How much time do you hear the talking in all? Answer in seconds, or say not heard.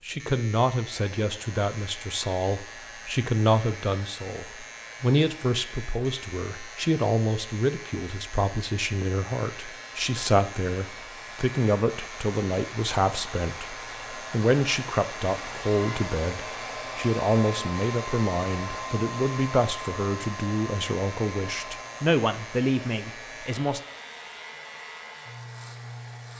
24 s.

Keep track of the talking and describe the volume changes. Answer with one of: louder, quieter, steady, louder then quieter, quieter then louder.
steady.